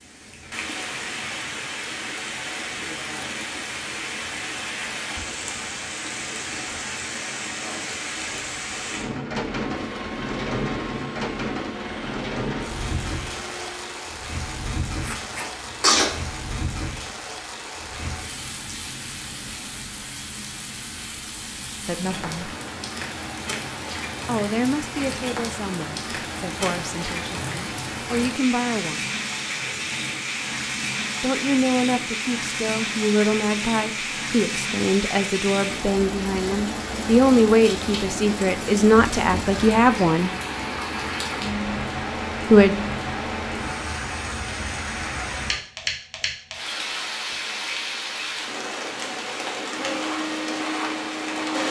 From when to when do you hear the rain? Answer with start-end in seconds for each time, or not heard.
0.0-51.6.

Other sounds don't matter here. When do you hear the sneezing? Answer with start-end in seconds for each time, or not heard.
15.0-16.1.